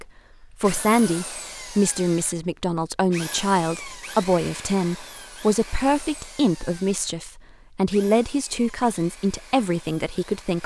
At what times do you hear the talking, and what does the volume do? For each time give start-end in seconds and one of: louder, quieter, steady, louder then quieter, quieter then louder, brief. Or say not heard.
0.0-10.6 steady.